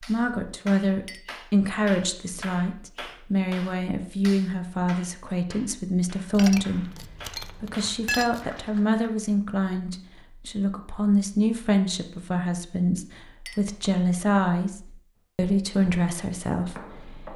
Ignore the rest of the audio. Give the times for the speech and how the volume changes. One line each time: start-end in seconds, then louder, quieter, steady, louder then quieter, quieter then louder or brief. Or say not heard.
0.0-17.3 steady.